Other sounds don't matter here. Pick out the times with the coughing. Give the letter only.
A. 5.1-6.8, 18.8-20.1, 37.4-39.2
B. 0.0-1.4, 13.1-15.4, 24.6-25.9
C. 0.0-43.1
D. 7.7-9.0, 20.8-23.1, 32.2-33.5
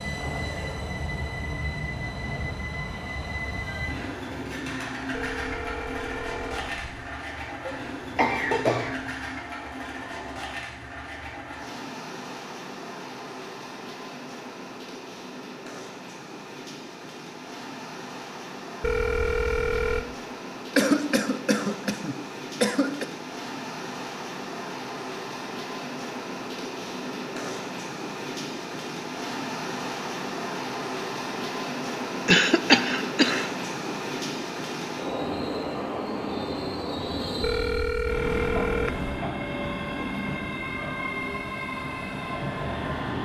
D.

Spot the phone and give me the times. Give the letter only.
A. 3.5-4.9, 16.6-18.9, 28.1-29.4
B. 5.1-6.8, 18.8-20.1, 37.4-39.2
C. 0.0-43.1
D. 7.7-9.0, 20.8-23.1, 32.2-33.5
B.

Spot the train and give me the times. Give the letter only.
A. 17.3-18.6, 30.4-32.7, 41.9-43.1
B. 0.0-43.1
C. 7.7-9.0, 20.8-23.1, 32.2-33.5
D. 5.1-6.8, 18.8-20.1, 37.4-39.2
B.